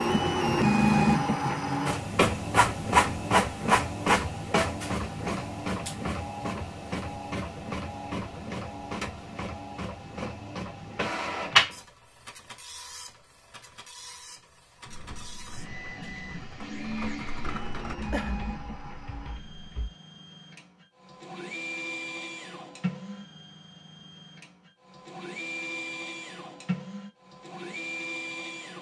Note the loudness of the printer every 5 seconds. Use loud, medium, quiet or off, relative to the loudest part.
loud, medium, medium, quiet, quiet, quiet.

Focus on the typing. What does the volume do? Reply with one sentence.
The loudness of the typing goes up, then down.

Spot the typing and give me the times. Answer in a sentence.
The typing can be heard from 14.8 to 19.9 s.